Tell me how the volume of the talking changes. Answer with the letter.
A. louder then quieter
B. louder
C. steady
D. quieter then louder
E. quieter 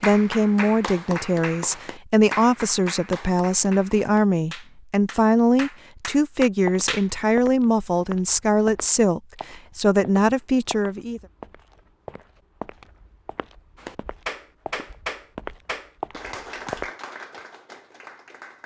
C.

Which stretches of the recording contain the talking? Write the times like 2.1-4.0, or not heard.
0.0-11.2.